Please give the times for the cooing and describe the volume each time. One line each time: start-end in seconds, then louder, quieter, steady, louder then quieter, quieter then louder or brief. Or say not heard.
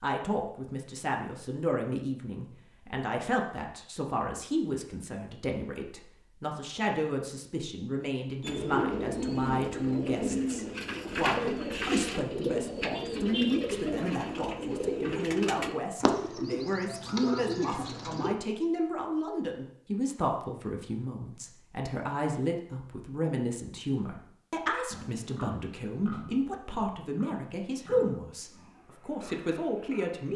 8.4-18.4 steady.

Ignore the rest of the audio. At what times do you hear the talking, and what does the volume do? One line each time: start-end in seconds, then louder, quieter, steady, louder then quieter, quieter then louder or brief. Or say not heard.
0.0-30.3 steady.